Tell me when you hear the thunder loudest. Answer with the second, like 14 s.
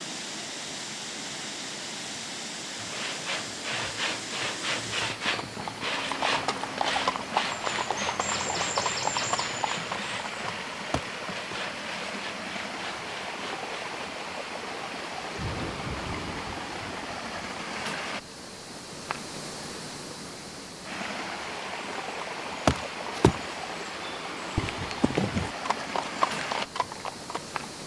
16 s.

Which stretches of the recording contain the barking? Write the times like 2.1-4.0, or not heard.
not heard.